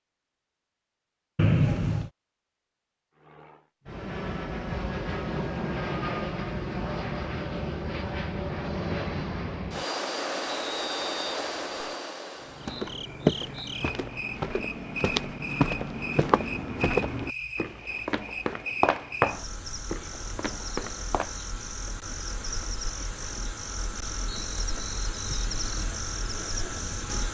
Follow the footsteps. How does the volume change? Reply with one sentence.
The volume of the footsteps goes down.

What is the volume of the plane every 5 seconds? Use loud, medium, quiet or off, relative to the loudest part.
loud, loud, loud, off, off, off.